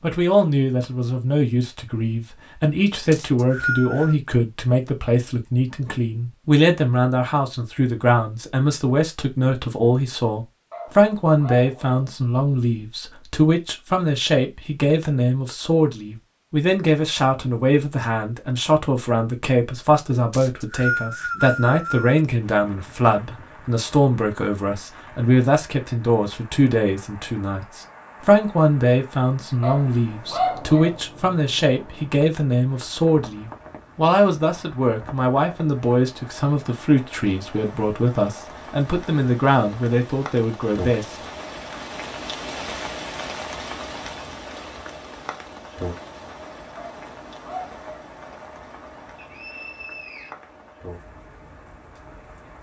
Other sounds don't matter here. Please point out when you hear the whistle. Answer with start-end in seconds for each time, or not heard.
3.1-4.2, 20.3-22.2, 49.1-50.4.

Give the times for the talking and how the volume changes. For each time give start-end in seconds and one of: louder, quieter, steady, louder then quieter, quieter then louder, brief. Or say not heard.
0.0-41.1 steady.